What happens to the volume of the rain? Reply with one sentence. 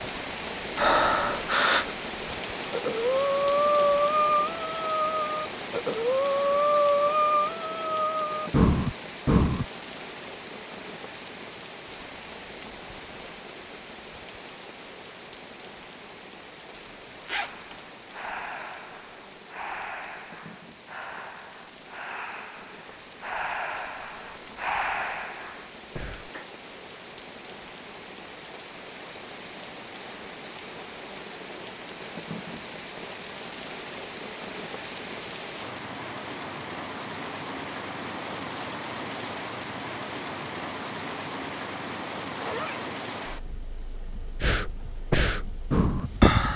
The volume of the rain goes down, then up.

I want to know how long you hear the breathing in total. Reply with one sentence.
The breathing can be heard for 20 seconds in total.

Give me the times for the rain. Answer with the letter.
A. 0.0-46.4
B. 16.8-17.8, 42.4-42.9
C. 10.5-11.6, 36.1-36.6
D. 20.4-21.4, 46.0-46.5
A.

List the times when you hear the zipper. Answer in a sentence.
You can hear the zipper from 16.8 to 17.8 s and from 42.4 to 42.9 s.